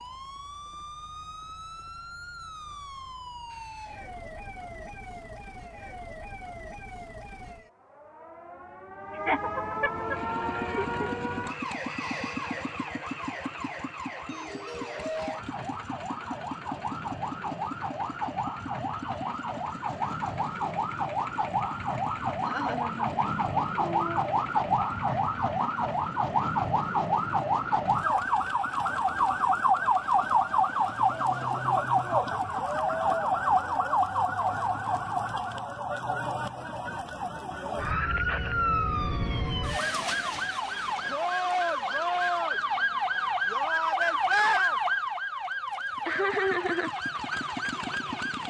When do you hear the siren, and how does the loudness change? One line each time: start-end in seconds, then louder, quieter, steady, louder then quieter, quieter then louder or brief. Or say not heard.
0.0-48.4 louder.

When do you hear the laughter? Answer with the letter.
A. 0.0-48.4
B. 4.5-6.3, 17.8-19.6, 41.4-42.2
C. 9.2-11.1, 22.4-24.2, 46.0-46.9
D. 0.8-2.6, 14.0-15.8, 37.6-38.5
C.